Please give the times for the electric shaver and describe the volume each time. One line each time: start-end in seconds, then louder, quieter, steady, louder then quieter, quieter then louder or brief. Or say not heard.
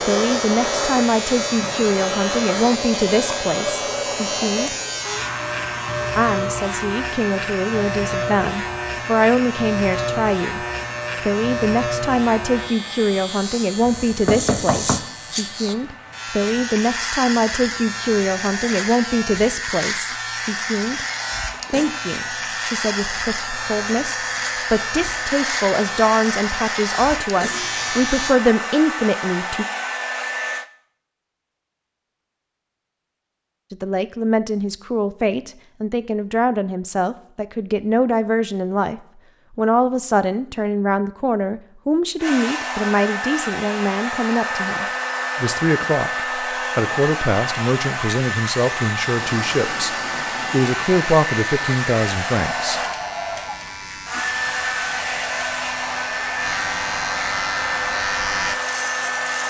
0.0-28.4 steady
49.1-59.4 louder.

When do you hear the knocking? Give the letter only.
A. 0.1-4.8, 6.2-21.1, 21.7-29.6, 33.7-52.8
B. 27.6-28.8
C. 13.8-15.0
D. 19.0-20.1
C.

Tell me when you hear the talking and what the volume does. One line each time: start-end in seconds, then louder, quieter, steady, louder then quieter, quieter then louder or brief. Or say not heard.
0.1-4.8 quieter
6.2-21.1 steady
21.7-29.6 louder
33.7-52.8 steady.